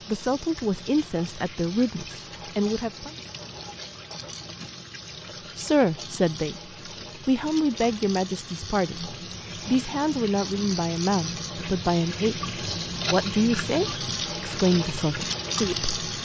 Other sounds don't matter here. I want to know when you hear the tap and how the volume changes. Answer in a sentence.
You can hear the tap from 0.0 to 16.2 s, getting louder.